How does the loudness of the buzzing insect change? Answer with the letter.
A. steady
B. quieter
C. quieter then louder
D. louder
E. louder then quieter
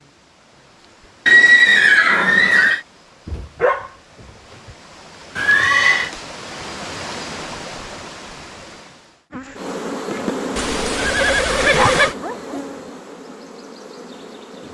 B.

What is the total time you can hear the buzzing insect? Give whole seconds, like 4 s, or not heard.
5 s.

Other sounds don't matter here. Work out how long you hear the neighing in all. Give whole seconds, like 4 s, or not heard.
4 s.